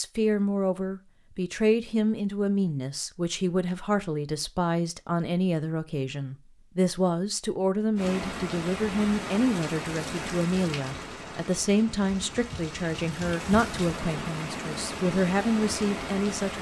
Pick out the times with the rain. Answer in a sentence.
You can hear the rain from 8.0 to 16.5 s.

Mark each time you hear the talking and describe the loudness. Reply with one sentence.
You can hear the talking from 0.0 to 16.5 s, at a steady volume.